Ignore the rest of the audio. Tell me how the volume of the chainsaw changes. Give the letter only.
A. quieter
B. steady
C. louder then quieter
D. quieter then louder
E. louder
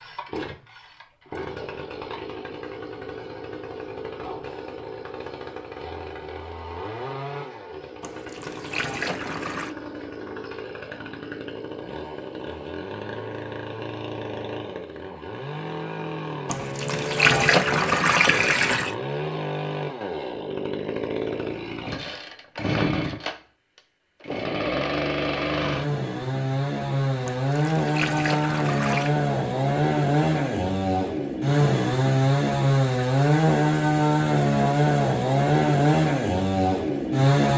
E.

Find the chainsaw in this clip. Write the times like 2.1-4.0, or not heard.
0.0-37.5.